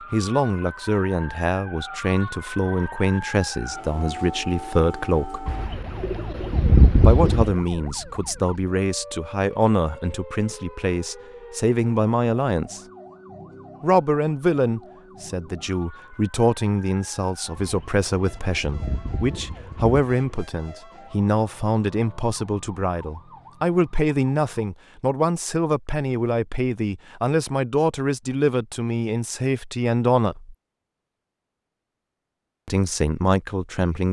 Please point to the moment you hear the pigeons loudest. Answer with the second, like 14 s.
7 s.